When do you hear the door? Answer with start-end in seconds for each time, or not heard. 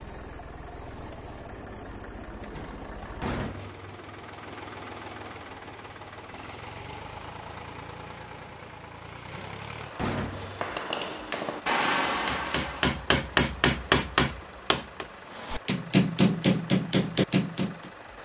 2.5-4.0, 9.3-10.7.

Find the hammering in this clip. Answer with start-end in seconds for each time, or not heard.
10.3-17.9.